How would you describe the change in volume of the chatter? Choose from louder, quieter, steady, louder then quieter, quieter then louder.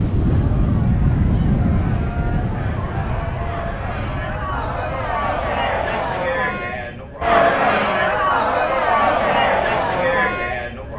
louder.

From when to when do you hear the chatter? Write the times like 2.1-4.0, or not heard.
0.1-10.9.